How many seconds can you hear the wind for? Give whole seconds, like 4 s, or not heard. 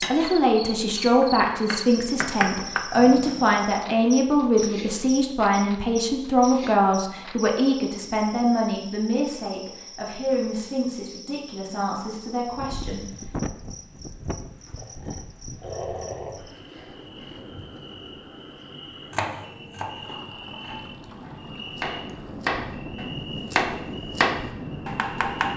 13 s.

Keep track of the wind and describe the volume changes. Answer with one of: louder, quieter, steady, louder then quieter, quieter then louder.
quieter then louder.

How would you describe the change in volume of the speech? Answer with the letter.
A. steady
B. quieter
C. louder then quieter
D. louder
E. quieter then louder
B.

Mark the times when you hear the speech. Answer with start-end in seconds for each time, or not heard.
0.0-13.1.